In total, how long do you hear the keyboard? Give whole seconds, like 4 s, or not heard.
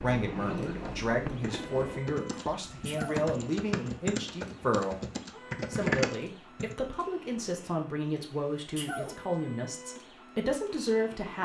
6 s.